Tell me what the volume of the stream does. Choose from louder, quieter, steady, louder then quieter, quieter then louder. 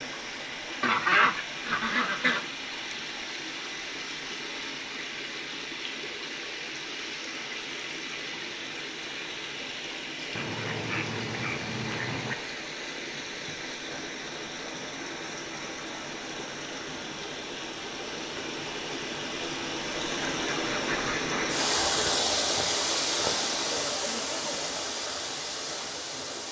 louder.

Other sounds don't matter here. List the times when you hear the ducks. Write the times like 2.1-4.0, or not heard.
0.8-2.4, 10.3-12.3, 20.2-22.2.